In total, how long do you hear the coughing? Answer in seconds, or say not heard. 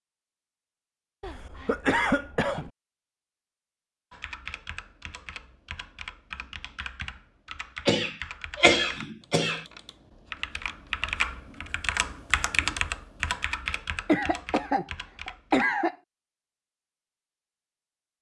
5 s.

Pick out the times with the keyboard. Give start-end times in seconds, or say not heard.
4.1-15.7.